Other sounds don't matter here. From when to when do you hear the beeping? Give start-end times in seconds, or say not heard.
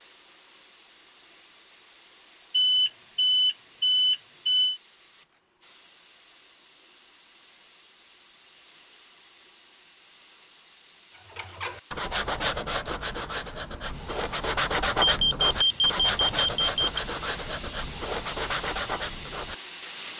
2.5-4.8, 15.0-17.0.